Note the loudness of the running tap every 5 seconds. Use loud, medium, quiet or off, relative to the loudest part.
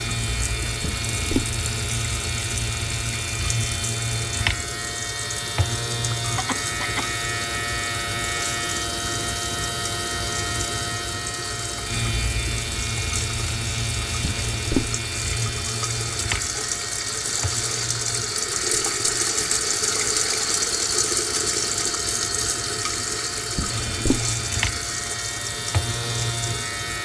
medium, medium, medium, loud, loud, medium.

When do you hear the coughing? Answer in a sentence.
You can hear the coughing from 6.2 to 7.2 s.